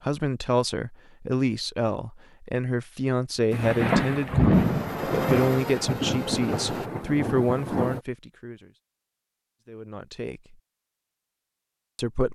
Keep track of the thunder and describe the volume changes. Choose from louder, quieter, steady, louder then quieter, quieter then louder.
quieter.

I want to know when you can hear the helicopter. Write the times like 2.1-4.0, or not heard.
4.5-6.9.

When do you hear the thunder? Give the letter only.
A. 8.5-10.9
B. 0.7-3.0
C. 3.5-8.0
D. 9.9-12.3
C.